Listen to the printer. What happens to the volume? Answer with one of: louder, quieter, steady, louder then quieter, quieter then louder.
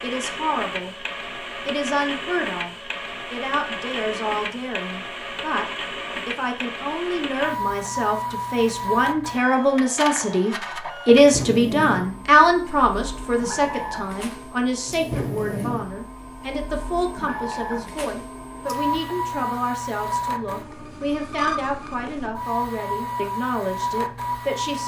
steady.